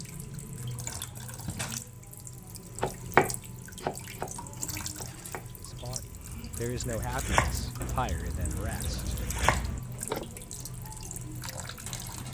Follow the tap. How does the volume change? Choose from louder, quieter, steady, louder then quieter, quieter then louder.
steady.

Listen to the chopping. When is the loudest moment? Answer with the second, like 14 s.
3 s.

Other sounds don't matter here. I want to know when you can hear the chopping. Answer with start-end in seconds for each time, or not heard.
2.8-10.2.